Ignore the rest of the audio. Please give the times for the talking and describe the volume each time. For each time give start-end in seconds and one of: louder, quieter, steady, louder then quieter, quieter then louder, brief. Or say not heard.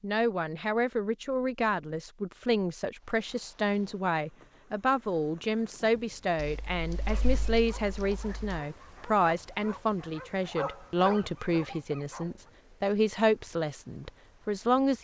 0.0-14.9 steady.